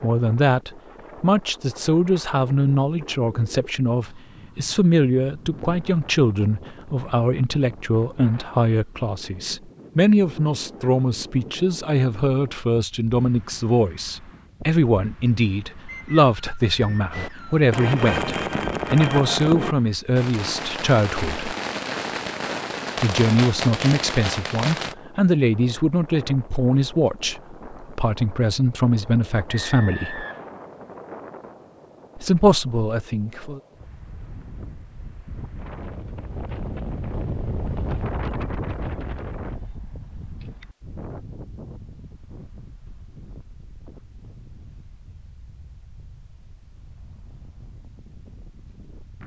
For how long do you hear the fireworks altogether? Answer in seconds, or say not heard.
8 s.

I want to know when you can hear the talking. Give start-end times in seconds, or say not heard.
0.0-21.5, 23.0-30.2, 32.1-33.6.